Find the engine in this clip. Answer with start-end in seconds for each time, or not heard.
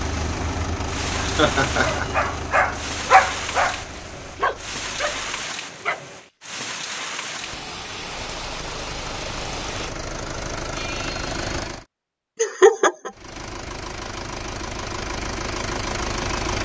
0.0-5.5, 8.0-11.8, 13.1-16.5.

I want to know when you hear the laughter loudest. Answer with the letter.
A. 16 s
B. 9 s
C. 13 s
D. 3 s
C.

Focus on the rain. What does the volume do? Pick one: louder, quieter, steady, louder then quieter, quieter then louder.
steady.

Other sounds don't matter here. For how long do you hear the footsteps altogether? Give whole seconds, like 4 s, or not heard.
not heard.